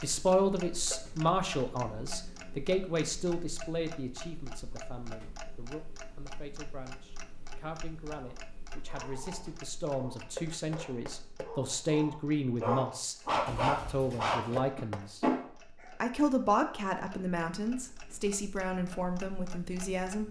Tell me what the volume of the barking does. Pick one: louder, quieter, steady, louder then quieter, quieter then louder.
louder.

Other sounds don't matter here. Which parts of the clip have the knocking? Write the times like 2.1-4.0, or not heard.
0.9-1.4, 10.3-11.6, 14.6-15.1.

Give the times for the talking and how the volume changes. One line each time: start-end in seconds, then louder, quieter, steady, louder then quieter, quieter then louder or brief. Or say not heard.
0.0-15.2 quieter then louder
16.0-20.2 quieter.